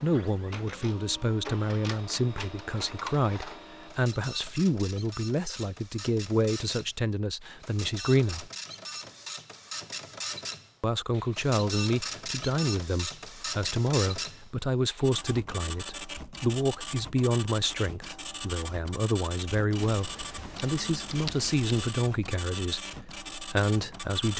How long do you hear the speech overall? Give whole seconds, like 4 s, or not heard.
22 s.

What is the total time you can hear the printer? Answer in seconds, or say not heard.
24 s.